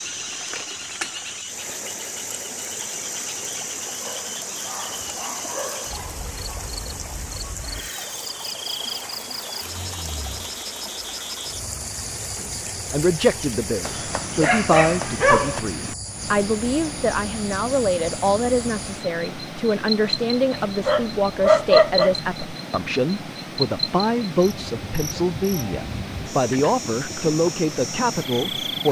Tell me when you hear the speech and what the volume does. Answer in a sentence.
The speech can be heard from 12.4 to 28.8 s, at a steady volume.